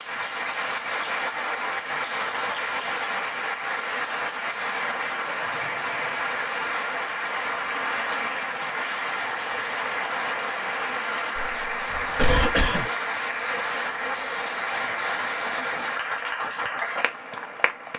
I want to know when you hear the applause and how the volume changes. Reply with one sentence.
The applause can be heard from 0.0 to 17.9 s, at a steady volume.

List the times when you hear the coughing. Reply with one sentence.
The coughing can be heard from 11.3 to 12.9 s.